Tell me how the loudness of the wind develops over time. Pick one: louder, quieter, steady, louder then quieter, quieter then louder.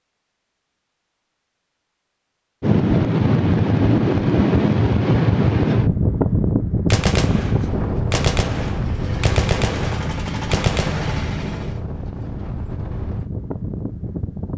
quieter.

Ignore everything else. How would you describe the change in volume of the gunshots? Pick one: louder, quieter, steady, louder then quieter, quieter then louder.
louder.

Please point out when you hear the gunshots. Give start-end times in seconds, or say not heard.
6.9-11.3.